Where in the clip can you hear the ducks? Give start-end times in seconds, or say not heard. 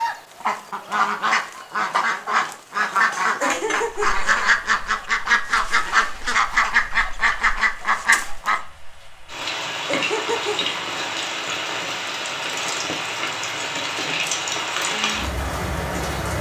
0.0-8.6.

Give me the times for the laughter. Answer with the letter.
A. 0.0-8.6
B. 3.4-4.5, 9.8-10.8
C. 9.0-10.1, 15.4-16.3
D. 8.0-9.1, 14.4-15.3
B.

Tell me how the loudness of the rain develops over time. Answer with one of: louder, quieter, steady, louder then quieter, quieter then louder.
louder.